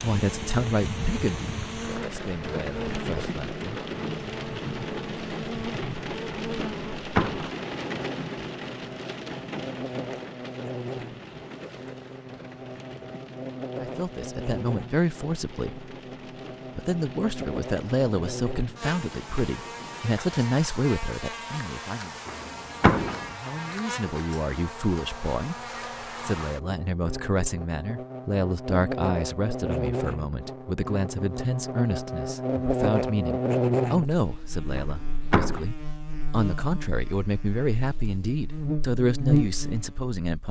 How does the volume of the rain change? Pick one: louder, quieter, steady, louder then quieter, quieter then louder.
quieter.